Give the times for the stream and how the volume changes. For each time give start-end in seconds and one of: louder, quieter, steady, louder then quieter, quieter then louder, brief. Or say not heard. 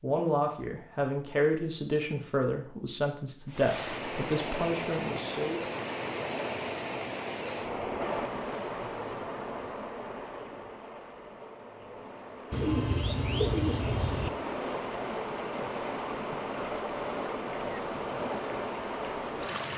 3.5-19.7 quieter then louder.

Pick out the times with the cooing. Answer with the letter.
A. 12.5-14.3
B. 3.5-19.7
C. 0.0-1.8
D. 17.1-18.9
A.